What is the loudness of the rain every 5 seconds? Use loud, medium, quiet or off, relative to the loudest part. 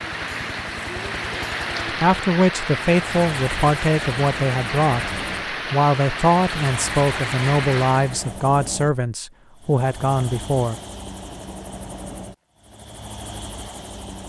loud, loud, off.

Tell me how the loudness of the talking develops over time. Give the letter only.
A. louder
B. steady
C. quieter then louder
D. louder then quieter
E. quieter
B.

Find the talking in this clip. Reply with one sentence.
You can hear the talking from 2.0 to 5.1 s and from 5.7 to 10.8 s.